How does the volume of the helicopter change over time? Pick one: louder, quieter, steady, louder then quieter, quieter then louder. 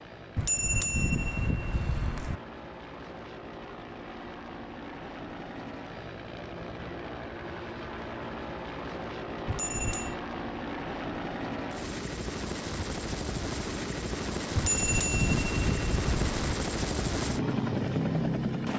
louder.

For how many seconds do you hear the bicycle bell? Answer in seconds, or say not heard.
5 s.